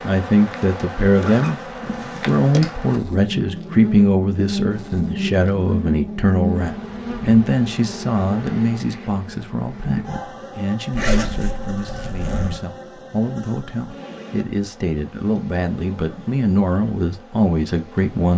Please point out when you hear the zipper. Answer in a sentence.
The zipper can be heard from 1.1 to 2.8 s and from 10.9 to 12.6 s.